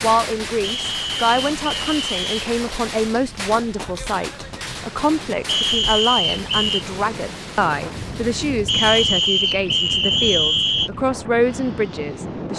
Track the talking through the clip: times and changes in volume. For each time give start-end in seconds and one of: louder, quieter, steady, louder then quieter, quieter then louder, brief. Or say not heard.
0.0-12.5 steady.